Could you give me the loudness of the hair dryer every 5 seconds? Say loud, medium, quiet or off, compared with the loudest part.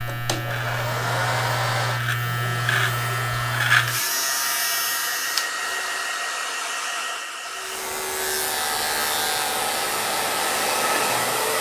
medium, medium, loud.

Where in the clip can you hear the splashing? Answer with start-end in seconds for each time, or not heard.
not heard.